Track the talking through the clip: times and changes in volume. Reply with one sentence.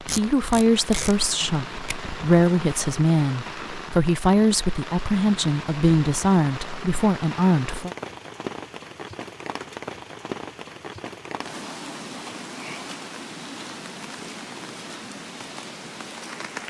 The talking can be heard from 0.1 to 7.9 s, at a steady volume.